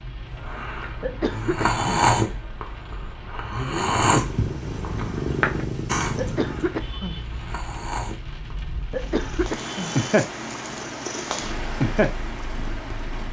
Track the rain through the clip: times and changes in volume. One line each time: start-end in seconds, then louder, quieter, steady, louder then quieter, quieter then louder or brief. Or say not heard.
0.0-13.2 louder.